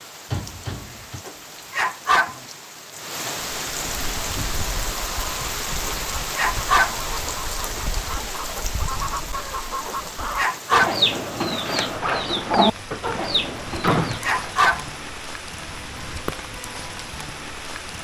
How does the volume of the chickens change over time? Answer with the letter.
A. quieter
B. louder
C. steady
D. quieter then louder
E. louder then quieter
B.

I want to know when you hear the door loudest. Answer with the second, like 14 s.
14 s.